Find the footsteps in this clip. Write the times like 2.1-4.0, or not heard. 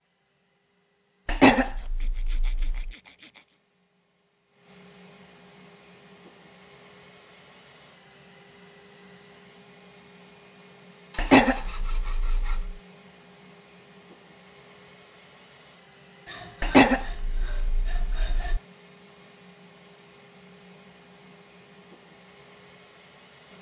not heard.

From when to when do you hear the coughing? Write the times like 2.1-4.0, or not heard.
1.2-2.9, 11.2-12.8, 16.6-18.6.